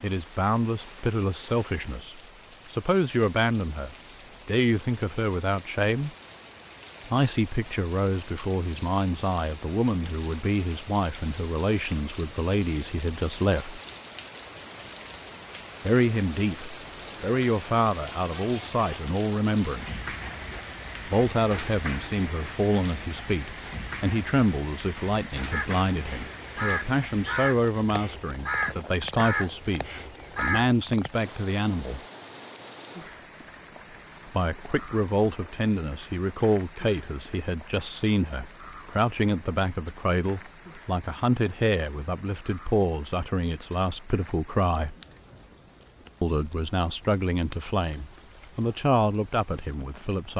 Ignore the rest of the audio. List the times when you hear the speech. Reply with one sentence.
The speech can be heard from 0.0 to 6.1 s, from 7.0 to 13.8 s, from 15.8 to 20.0 s, from 21.1 to 32.0 s, from 34.2 to 45.0 s and from 46.2 to 50.3 s.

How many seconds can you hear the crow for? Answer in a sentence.
You can hear the crow for 5 seconds altogether.